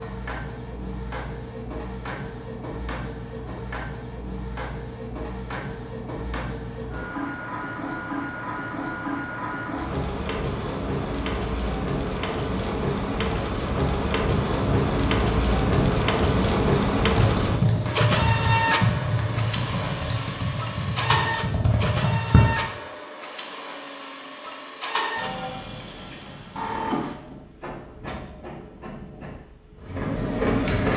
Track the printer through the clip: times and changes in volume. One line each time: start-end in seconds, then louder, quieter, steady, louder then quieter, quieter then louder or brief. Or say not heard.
0.0-30.9 louder then quieter.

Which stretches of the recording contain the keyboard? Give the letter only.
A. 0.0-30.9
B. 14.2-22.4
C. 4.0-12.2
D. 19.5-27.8
B.